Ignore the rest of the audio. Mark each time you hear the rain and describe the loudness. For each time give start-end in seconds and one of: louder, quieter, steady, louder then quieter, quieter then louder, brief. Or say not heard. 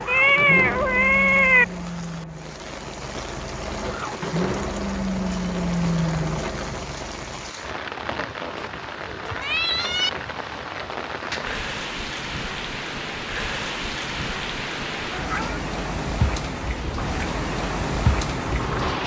0.0-19.0 louder.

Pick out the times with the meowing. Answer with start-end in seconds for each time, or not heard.
0.1-1.6, 8.6-10.1, 15.1-15.6.